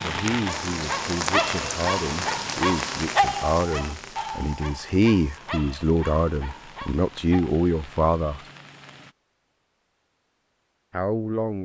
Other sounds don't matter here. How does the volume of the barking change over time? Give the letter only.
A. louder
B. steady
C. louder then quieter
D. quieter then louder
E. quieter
E.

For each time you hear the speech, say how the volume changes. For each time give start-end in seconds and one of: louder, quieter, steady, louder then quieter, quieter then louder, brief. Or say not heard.
0.0-8.4 louder
10.9-11.6 brief.